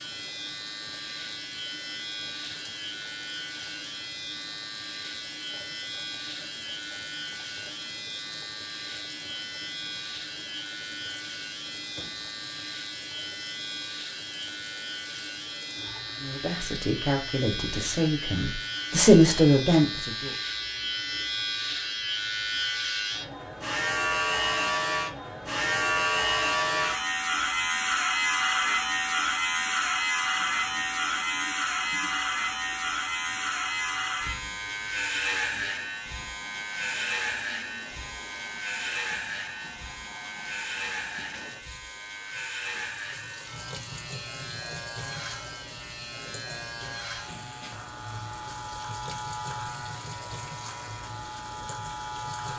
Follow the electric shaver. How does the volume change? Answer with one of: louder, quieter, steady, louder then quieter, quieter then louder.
louder then quieter.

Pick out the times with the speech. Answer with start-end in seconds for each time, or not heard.
16.2-20.4.